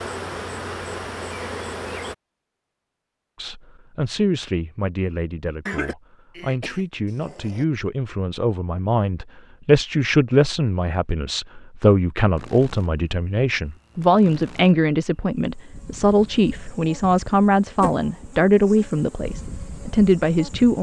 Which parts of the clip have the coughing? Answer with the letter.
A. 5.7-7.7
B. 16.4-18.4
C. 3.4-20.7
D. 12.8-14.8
A.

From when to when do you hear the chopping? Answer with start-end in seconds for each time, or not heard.
not heard.